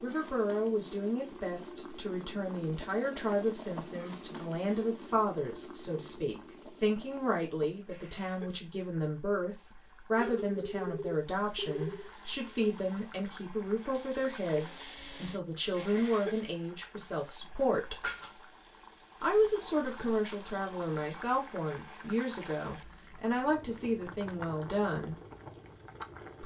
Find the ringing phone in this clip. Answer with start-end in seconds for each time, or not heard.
10.2-12.1.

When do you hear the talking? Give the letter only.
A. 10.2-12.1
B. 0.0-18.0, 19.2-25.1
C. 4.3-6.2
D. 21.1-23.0
B.